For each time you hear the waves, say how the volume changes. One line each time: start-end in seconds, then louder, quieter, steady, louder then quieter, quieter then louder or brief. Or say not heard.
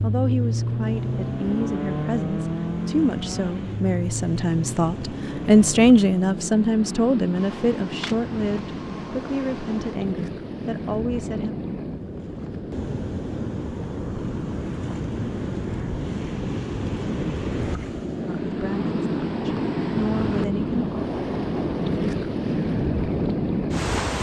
0.0-24.1 louder.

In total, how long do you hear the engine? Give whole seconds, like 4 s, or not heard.
10 s.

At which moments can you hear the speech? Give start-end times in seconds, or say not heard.
0.0-11.6, 18.4-20.9.